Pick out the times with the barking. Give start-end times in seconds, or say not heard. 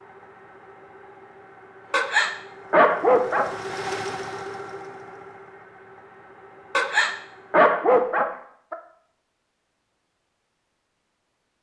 1.9-3.5, 6.8-8.8.